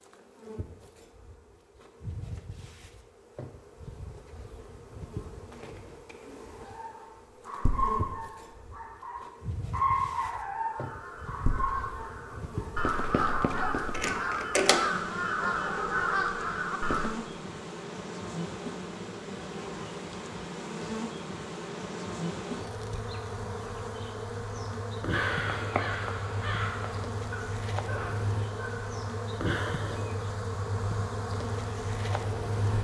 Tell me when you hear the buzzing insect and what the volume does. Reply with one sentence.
The buzzing insect can be heard from 0.0 to 32.7 s, getting louder.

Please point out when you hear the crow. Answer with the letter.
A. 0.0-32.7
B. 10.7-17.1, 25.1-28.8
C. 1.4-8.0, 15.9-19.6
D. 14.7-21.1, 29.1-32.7
B.